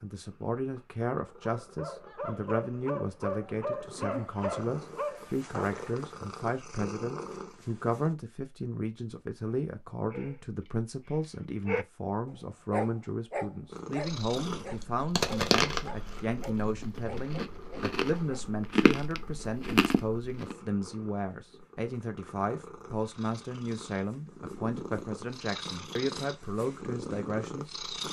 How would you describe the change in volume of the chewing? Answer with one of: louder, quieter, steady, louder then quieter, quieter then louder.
quieter then louder.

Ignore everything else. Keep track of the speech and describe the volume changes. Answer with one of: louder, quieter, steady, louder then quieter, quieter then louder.
steady.